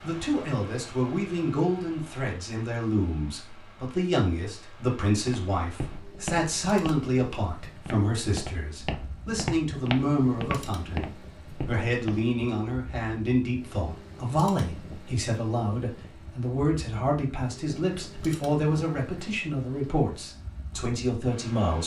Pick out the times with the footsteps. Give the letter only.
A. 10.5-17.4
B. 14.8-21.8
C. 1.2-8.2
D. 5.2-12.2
D.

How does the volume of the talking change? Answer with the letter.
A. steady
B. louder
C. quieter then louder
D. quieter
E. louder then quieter
A.